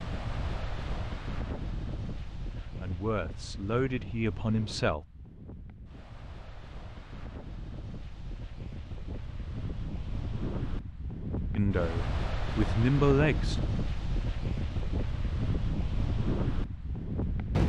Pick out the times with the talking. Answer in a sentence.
The talking can be heard from 2.6 to 5.0 s and from 11.6 to 13.6 s.